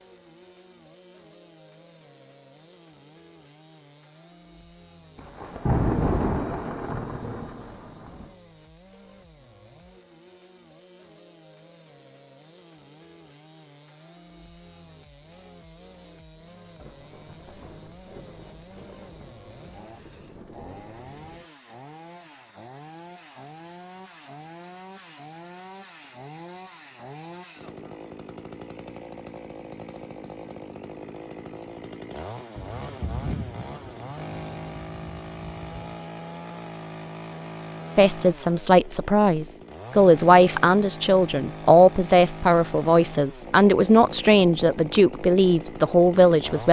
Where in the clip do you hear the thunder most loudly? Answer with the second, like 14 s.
6 s.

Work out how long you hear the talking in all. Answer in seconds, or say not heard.
9 s.